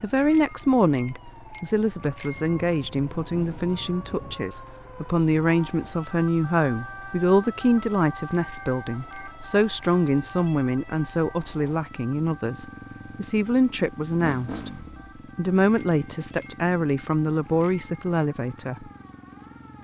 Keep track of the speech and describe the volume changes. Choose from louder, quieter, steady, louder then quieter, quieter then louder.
steady.